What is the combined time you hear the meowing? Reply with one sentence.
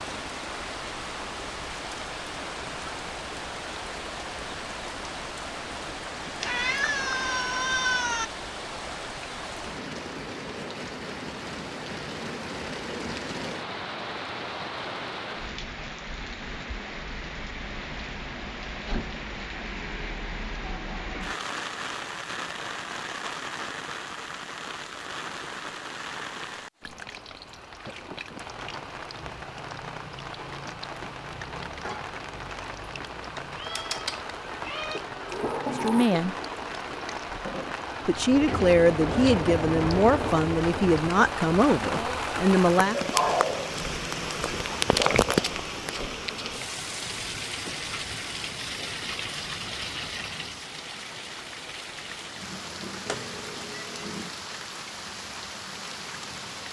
You can hear the meowing for 5 seconds altogether.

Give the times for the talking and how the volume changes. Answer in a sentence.
You can hear the talking briefly from 35.8 to 36.4 s; and from 38.0 to 43.0 s, at a steady volume.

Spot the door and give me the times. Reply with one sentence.
You can hear the door from 35.2 to 36.1 s.